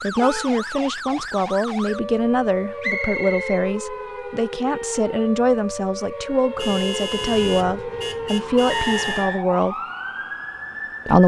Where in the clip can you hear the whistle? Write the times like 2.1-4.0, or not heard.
2.8-3.6, 8.7-9.4.